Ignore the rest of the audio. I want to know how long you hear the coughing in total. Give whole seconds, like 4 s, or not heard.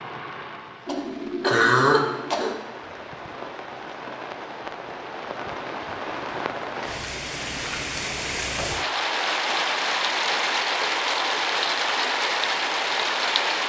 2 s.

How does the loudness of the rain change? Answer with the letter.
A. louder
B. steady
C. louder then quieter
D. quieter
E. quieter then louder
A.